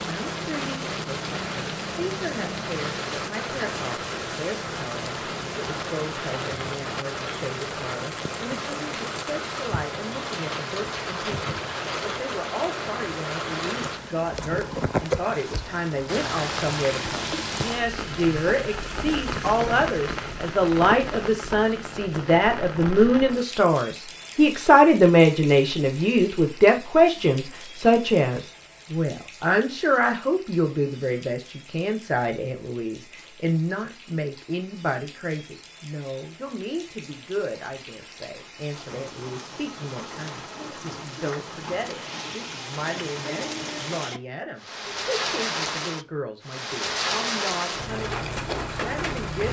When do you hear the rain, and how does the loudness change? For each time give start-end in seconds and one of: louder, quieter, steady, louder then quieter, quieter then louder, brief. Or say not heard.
0.0-49.4 quieter then louder.